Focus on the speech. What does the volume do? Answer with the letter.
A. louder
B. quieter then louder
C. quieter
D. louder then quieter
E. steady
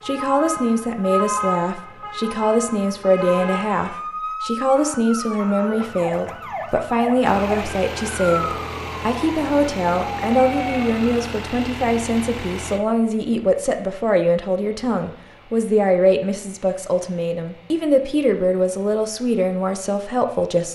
E.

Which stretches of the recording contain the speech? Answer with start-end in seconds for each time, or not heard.
0.1-20.7.